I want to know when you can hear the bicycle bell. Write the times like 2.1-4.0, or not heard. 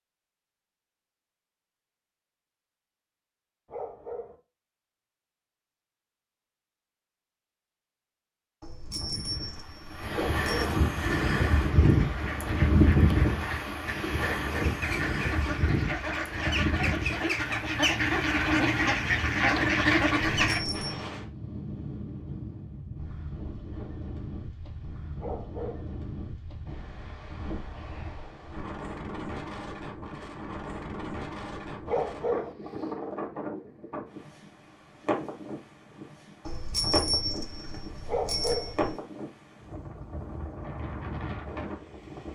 8.6-10.7, 20.4-21.0, 36.5-39.0.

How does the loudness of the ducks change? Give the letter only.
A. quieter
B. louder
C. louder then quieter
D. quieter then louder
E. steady
B.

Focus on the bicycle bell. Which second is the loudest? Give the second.
37 s.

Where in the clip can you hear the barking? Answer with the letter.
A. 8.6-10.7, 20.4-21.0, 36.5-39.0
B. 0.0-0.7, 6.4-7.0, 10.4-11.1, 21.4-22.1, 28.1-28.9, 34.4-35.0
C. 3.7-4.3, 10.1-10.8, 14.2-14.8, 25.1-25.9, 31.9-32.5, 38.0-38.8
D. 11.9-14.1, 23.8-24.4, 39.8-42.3
C.